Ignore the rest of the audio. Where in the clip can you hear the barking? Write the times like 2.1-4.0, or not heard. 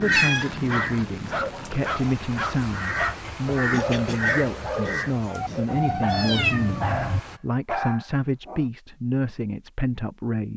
0.7-8.7.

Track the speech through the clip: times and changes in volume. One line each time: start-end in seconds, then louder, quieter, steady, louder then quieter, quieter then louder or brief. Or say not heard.
0.0-10.5 steady.